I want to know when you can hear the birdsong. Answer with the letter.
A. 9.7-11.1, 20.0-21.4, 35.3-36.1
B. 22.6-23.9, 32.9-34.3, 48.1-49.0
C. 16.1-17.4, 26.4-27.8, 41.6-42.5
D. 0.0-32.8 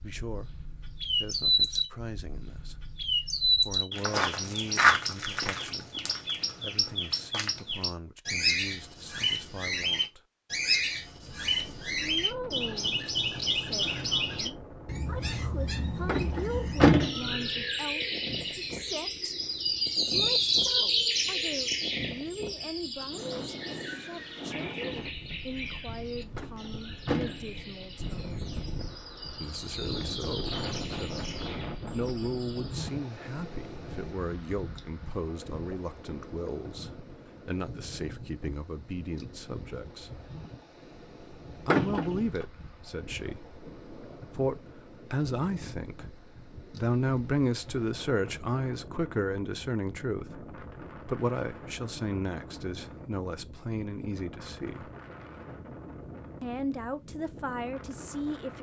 D.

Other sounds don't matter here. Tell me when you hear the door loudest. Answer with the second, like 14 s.
17 s.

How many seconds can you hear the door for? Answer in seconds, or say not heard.
4 s.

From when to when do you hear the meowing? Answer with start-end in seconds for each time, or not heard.
not heard.